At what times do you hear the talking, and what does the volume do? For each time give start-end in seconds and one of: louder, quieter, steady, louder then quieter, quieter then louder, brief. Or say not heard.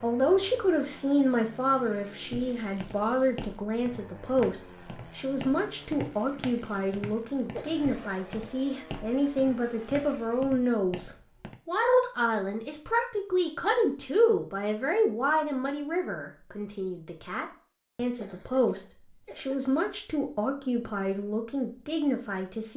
0.0-22.7 steady.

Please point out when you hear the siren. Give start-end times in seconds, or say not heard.
not heard.